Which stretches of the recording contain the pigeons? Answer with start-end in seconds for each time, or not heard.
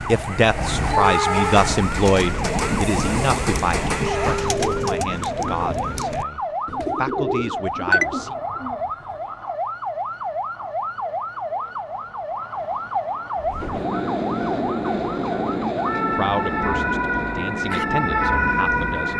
2.1-9.2.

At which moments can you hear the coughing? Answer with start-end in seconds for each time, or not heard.
not heard.